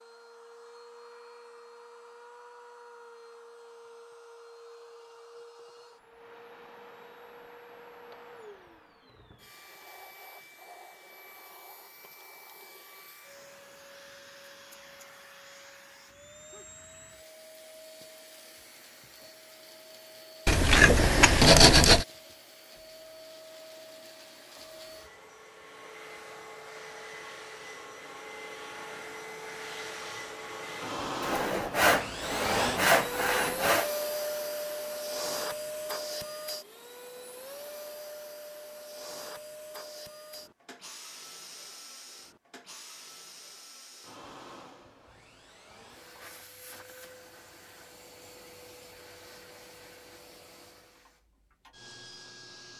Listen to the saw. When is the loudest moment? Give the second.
22 s.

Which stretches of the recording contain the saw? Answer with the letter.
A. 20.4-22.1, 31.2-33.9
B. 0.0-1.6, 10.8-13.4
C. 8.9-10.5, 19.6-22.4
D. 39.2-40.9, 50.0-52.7
A.